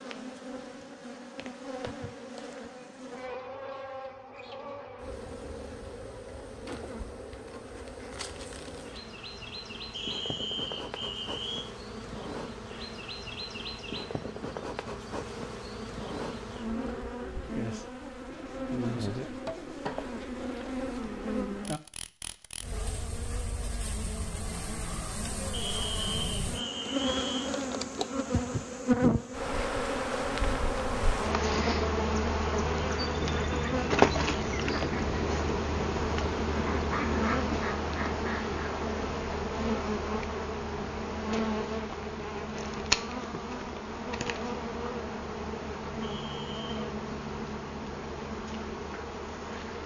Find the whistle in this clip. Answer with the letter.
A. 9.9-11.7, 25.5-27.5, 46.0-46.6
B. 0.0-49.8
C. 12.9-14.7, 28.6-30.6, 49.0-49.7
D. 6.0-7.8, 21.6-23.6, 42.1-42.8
A.